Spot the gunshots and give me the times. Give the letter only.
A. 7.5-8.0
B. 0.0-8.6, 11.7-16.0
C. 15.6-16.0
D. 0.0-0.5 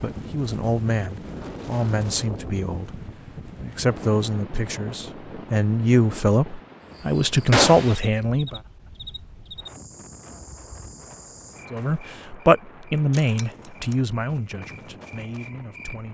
A.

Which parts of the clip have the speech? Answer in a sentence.
You can hear the speech from 0.0 to 8.6 s and from 11.7 to 16.0 s.